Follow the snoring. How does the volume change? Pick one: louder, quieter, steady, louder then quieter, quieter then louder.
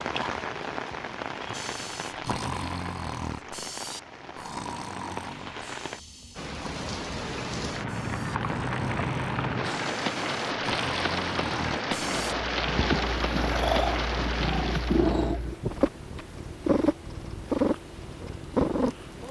quieter then louder.